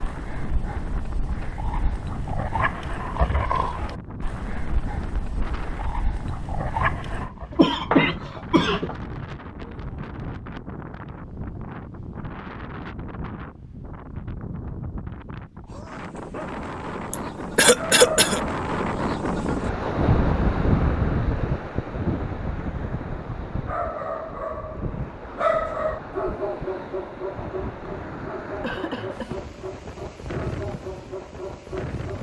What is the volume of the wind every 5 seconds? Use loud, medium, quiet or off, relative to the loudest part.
medium, medium, medium, loud, loud, medium, medium.